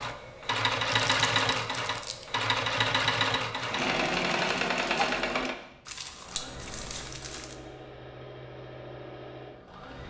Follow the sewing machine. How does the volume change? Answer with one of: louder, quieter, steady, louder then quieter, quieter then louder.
quieter.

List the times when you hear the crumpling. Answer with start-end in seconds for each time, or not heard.
0.8-2.2, 5.8-7.5.